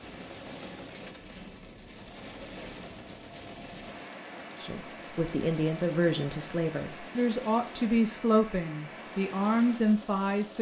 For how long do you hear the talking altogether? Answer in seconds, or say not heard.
6 s.